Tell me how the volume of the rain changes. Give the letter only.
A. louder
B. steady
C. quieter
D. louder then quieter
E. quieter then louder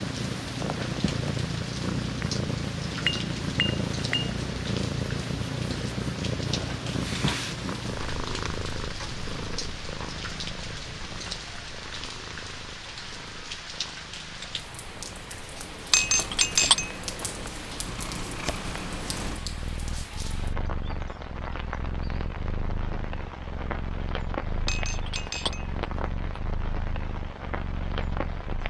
B.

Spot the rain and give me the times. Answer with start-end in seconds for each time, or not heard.
0.0-28.6.